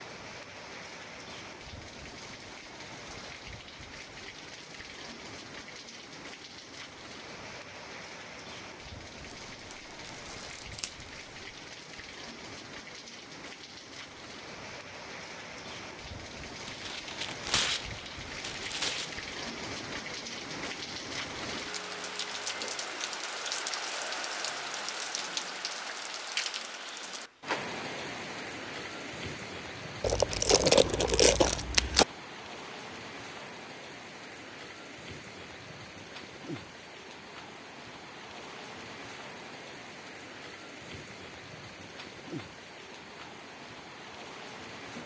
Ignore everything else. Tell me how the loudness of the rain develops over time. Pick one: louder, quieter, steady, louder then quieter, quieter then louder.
louder then quieter.